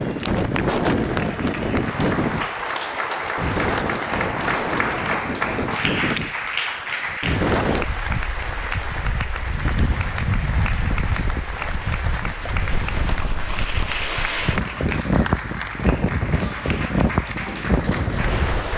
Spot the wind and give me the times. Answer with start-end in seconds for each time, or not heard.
0.0-18.7.